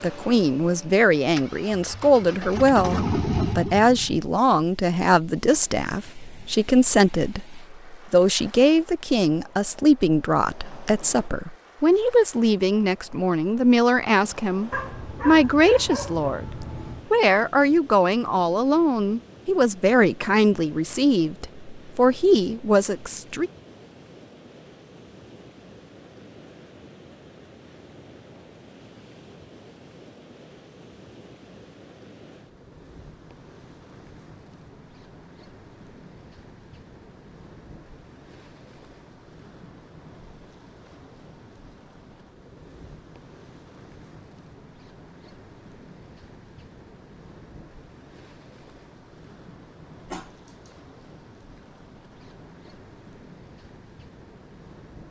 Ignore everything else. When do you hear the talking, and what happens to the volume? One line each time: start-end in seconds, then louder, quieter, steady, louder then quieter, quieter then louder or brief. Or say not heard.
0.0-23.5 steady.